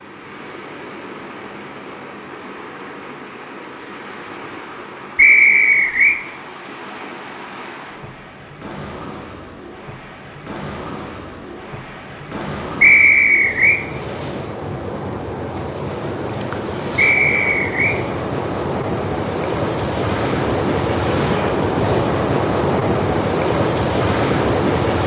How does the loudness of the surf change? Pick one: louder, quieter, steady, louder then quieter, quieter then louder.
louder.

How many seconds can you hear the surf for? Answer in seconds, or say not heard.
25 s.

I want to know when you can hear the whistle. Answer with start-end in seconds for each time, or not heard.
5.2-6.2, 12.8-13.8, 16.9-18.0.